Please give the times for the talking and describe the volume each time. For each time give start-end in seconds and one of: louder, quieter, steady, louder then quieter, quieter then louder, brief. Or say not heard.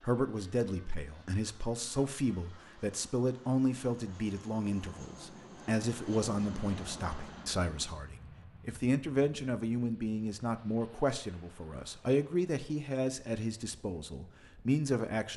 0.0-15.3 steady.